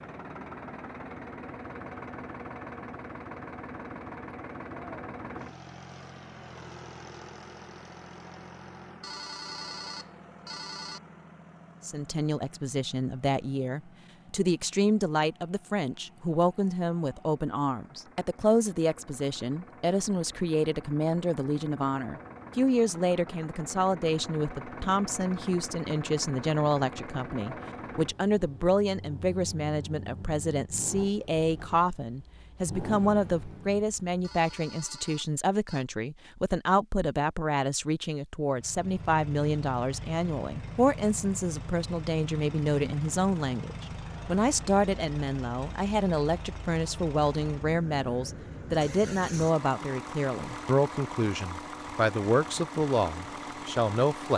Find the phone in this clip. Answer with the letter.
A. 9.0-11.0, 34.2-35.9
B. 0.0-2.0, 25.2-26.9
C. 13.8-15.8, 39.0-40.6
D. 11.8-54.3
A.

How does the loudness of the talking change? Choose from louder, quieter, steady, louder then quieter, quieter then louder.
steady.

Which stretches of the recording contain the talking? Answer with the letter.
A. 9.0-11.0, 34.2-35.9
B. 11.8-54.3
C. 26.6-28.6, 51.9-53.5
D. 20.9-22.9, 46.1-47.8
B.